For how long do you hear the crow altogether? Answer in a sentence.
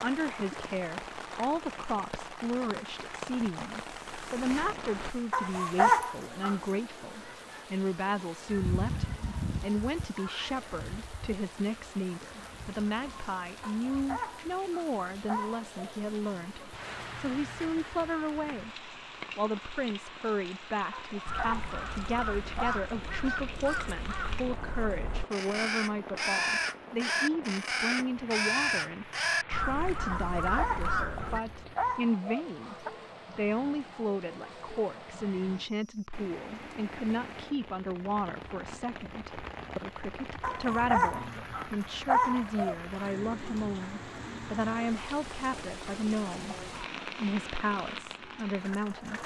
You can hear the crow for 10 seconds altogether.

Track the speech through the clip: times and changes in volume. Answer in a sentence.
The speech can be heard from 0.0 to 49.2 s, at a steady volume.